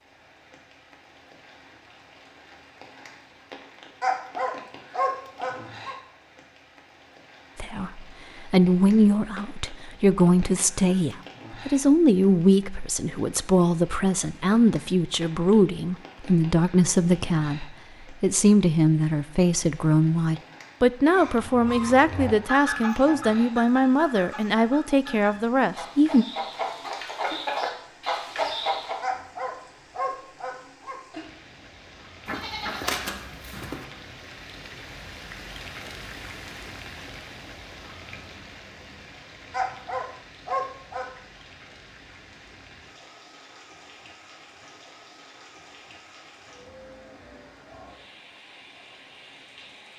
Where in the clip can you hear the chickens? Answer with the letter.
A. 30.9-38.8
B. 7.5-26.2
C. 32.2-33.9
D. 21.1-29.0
D.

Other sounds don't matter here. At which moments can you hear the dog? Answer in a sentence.
The dog can be heard from 4.0 to 6.0 s, from 29.0 to 31.0 s and from 39.5 to 41.0 s.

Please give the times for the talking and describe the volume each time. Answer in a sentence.
You can hear the talking from 7.5 to 26.2 s, at a steady volume.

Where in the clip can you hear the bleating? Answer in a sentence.
The bleating can be heard from 32.2 to 33.9 s.